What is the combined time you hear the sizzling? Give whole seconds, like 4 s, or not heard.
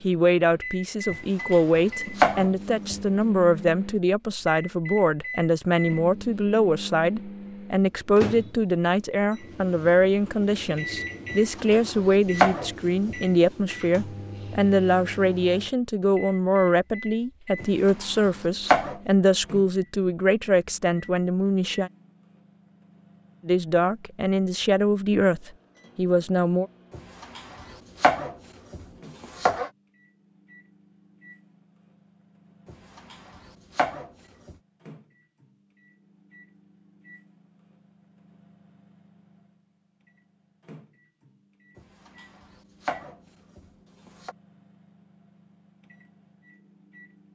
not heard.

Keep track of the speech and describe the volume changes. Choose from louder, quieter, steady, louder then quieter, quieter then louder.
steady.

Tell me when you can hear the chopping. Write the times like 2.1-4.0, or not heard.
1.1-3.0, 11.3-13.2, 17.6-19.0, 26.9-29.7, 32.6-34.5, 41.8-44.4.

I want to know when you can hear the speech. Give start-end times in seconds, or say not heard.
0.0-21.9, 23.4-26.6.